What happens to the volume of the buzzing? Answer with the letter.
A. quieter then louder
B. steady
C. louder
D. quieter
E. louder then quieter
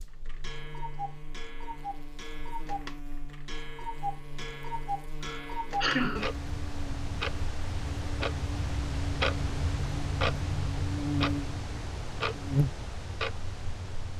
C.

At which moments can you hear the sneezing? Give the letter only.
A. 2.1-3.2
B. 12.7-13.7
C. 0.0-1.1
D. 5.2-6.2
D.